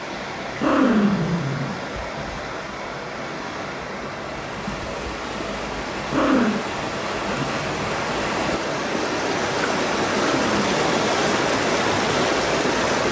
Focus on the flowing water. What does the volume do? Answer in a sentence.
The loudness of the flowing water goes up.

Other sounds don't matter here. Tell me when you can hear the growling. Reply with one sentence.
The growling can be heard from 0.6 to 2.3 s, from 6.0 to 6.6 s and from 10.2 to 10.9 s.